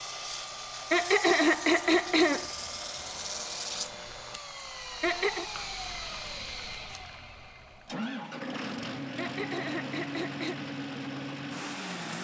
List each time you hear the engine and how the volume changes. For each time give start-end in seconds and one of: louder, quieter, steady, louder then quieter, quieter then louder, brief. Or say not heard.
0.0-12.1 steady.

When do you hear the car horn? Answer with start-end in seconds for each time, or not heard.
not heard.